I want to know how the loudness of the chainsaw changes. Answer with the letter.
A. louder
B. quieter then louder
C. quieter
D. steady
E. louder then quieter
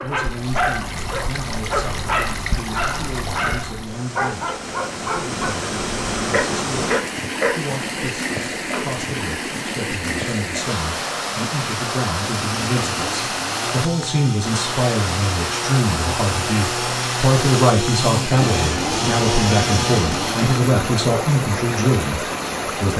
A.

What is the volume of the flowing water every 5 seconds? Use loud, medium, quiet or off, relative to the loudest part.
medium, loud, loud, loud, loud.